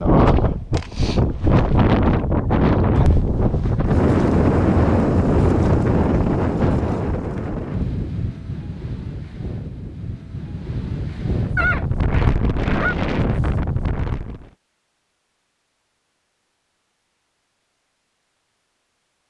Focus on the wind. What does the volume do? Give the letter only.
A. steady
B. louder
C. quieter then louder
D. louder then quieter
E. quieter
C.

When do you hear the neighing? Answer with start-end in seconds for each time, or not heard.
11.6-12.9.